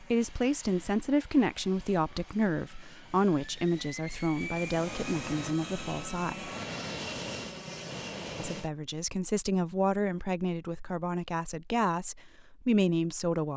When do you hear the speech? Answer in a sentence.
The speech can be heard from 0.0 to 6.5 s and from 8.3 to 13.5 s.